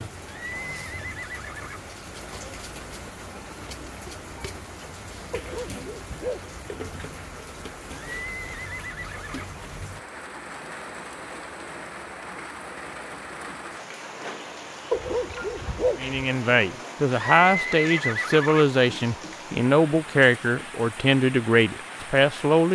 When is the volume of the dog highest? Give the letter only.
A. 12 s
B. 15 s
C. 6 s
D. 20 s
B.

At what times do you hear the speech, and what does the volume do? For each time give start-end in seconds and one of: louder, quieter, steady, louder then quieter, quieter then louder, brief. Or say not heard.
15.9-22.6 steady.